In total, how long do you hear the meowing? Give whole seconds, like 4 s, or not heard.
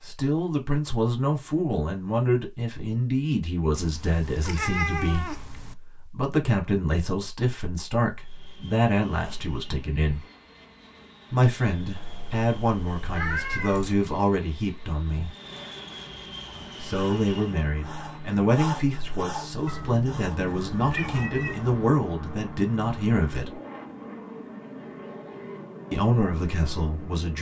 6 s.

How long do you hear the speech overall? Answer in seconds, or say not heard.
22 s.